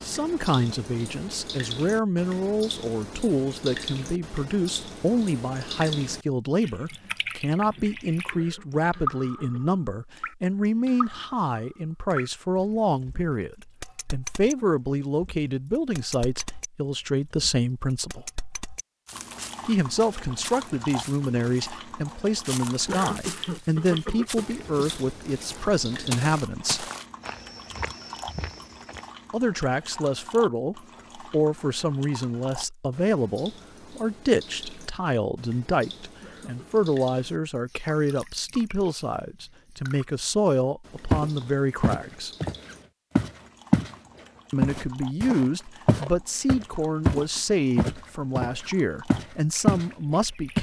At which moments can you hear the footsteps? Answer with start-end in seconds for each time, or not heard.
19.1-29.1, 41.1-44.0, 44.6-49.9.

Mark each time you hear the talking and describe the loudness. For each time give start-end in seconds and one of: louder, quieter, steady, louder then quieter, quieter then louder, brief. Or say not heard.
0.0-18.3 steady
19.6-26.9 steady
29.3-42.4 steady
44.5-50.5 steady.